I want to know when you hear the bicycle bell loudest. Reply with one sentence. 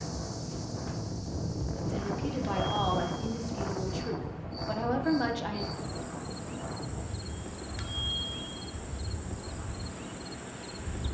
The loudest moment of the bicycle bell is at 8 seconds.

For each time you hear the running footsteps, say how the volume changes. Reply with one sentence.
You can't hear the running footsteps here.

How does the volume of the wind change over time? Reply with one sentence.
The loudness of the wind goes down.